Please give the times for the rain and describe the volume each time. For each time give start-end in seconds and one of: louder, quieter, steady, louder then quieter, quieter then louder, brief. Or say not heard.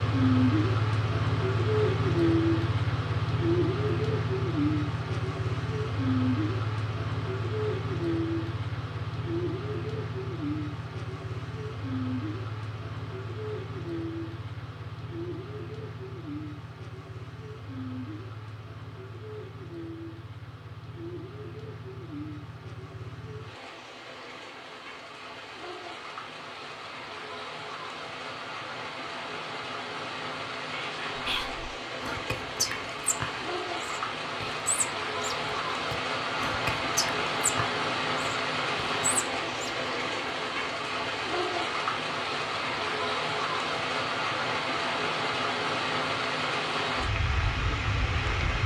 0.0-48.6 quieter then louder.